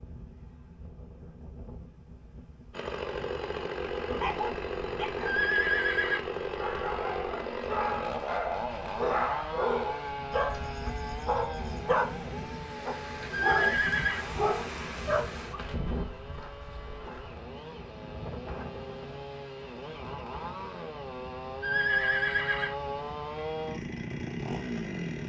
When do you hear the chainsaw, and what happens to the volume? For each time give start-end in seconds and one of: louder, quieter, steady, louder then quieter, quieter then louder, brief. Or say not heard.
2.7-25.2 quieter then louder.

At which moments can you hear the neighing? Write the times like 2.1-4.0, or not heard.
5.2-6.2, 13.3-14.2, 21.6-22.8.